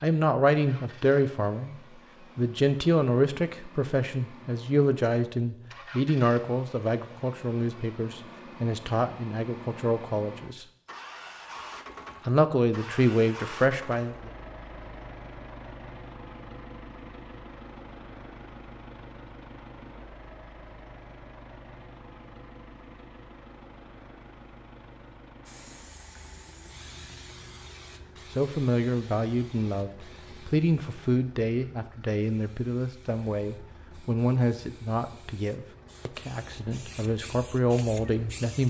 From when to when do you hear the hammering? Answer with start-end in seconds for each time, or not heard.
not heard.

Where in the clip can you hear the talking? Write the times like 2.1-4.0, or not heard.
0.0-1.8, 2.4-10.7, 12.2-14.3, 28.4-38.6.